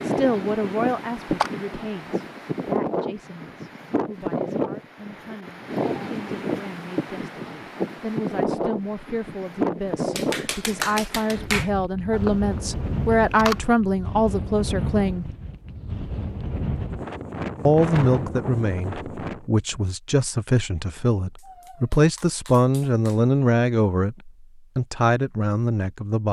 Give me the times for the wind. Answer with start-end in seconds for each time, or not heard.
0.0-19.4.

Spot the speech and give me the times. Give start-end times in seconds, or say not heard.
0.0-15.2, 17.6-26.2.